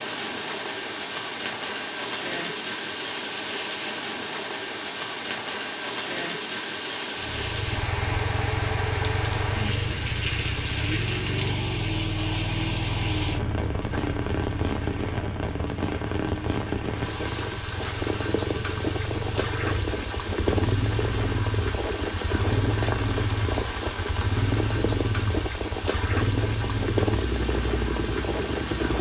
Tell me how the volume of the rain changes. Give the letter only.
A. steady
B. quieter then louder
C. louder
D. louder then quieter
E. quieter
A.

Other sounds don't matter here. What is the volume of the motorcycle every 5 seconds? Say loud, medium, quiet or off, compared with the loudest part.
off, loud, loud, medium, loud, loud.